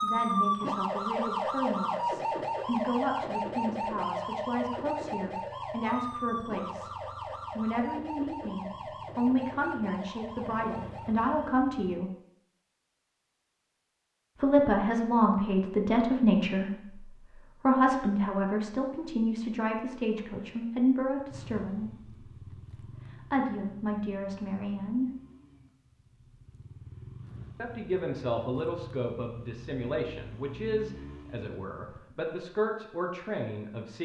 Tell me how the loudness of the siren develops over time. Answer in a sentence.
The loudness of the siren goes down.